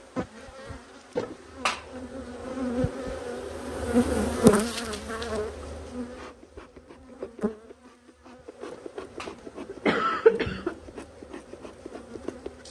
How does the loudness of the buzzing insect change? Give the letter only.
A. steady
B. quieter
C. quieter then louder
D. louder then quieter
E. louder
D.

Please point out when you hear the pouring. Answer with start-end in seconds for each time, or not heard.
not heard.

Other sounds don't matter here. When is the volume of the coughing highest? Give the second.
10 s.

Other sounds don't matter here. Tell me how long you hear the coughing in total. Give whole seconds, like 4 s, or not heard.
3 s.